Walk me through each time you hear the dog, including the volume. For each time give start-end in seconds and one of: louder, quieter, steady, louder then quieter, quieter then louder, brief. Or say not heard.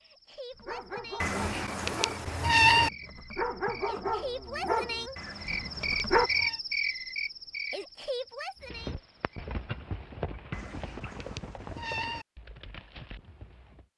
0.5-6.3 louder then quieter.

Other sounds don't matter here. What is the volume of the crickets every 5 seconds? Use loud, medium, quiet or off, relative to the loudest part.
medium, loud, off.